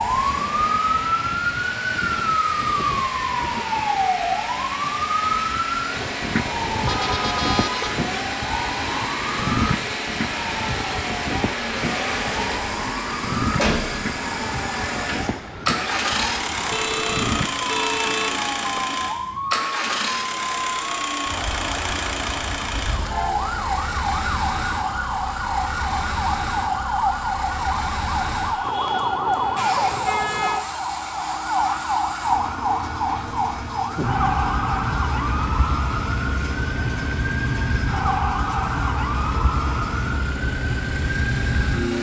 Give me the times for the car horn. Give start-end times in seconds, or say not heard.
6.8-8.0, 16.7-18.9, 28.6-30.6.